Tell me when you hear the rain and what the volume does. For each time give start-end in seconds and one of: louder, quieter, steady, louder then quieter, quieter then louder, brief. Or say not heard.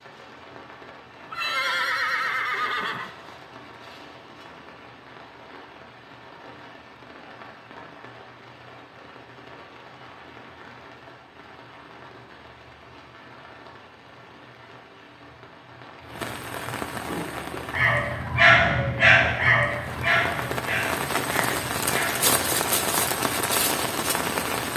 0.0-24.7 louder.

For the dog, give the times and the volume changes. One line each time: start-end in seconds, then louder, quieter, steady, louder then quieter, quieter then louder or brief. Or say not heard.
17.1-22.3 louder then quieter.